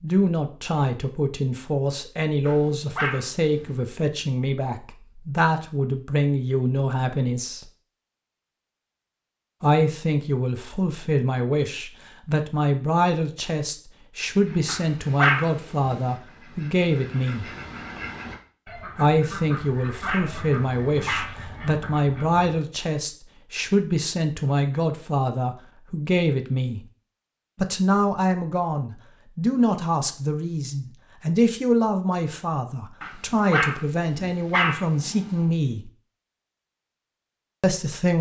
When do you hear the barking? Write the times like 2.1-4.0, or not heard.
2.5-3.8, 14.7-16.0, 19.5-21.4, 33.0-35.4.